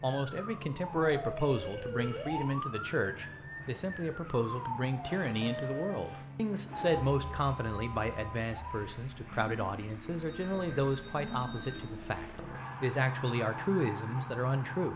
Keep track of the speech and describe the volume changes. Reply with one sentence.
The loudness of the speech stays about the same.